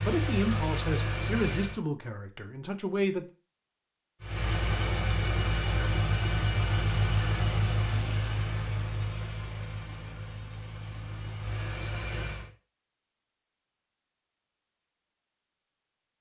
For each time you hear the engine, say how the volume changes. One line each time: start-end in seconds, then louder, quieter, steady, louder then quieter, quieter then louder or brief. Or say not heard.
0.0-1.8 brief
4.2-12.5 quieter.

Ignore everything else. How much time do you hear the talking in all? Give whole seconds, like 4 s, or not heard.
3 s.